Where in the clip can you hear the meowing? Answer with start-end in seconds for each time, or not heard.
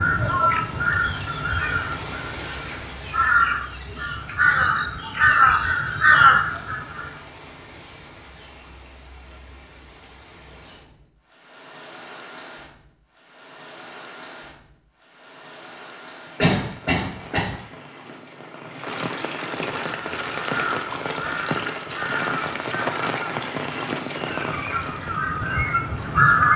not heard.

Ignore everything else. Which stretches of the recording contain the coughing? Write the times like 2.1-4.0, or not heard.
16.4-17.6.